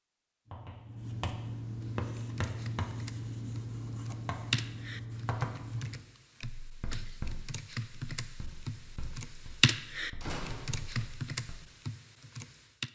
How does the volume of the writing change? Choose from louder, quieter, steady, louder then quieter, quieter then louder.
quieter.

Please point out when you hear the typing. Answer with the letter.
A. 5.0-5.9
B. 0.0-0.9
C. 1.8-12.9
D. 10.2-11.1
C.